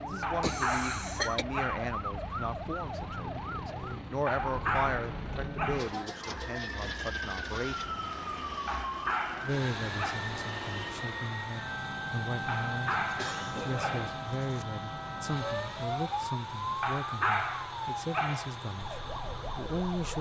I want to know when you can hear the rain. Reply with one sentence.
The rain can't be heard in this clip.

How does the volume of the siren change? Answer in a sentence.
The loudness of the siren stays about the same.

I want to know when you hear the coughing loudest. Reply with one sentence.
The loudest moment of the coughing is at 1 second.